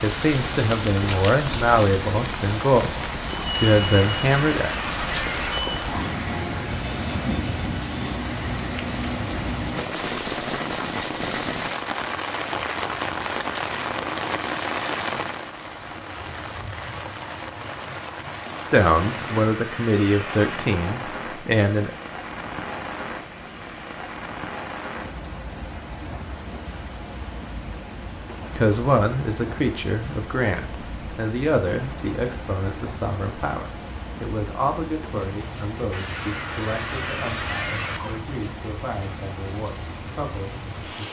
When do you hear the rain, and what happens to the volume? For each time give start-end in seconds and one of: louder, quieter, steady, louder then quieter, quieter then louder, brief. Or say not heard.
0.0-41.0 quieter.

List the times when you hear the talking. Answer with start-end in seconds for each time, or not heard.
0.0-4.7, 18.7-21.9, 28.6-41.0.